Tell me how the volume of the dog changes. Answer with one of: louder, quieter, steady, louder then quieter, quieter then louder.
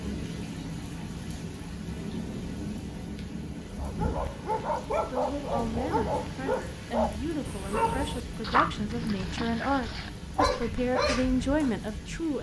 steady.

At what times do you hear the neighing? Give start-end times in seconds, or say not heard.
not heard.